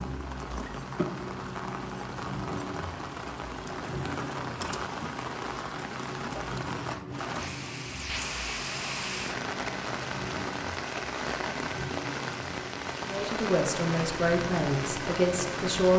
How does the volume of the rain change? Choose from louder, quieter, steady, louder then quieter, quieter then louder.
steady.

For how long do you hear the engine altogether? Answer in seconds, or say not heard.
16 s.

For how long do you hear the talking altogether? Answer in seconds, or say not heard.
3 s.